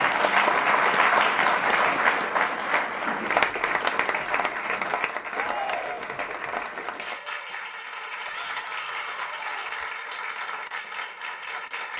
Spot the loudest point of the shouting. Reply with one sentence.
The volume of the shouting peaks at 6 seconds.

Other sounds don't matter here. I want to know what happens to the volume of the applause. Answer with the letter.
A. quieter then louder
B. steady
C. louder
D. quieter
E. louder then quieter
D.